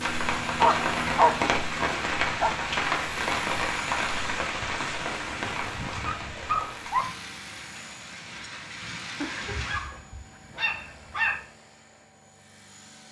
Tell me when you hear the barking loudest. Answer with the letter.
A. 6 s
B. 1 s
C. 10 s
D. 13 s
B.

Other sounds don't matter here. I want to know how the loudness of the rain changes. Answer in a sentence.
The loudness of the rain goes down.